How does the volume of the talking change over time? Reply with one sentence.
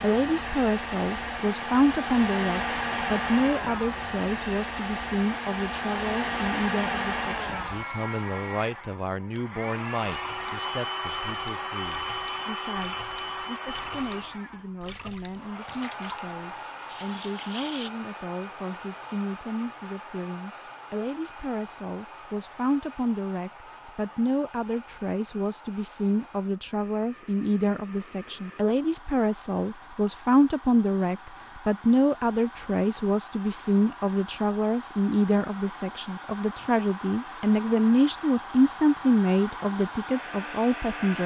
The loudness of the talking goes down, then up.